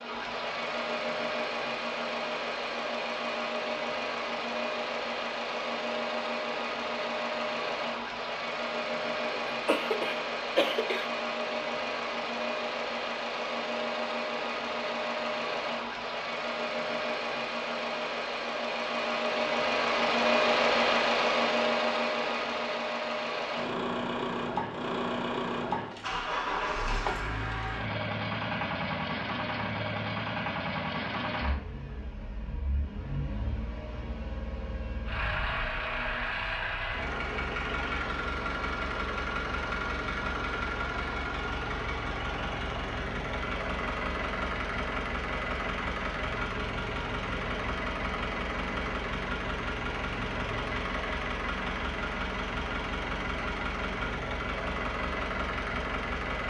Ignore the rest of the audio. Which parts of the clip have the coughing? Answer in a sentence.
You can hear the coughing from 9.3 to 11.1 s.